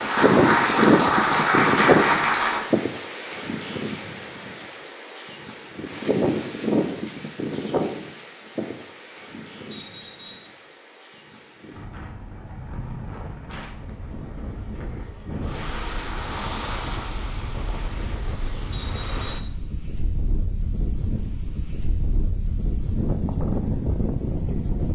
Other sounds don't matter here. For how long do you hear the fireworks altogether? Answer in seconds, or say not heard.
not heard.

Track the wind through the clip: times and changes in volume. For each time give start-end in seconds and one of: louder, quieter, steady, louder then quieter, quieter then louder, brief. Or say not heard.
0.0-24.8 quieter then louder.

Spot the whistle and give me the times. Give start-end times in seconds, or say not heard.
9.7-10.5, 18.7-19.6.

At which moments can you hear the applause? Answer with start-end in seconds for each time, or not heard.
0.0-2.6.